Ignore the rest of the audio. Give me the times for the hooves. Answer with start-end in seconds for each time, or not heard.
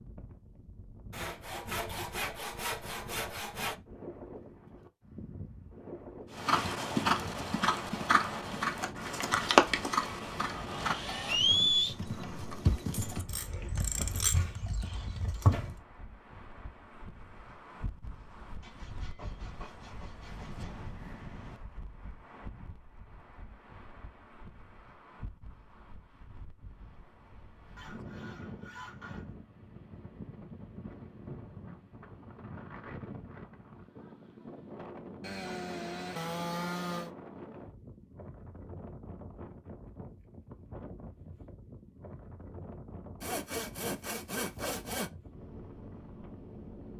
6.3-15.8.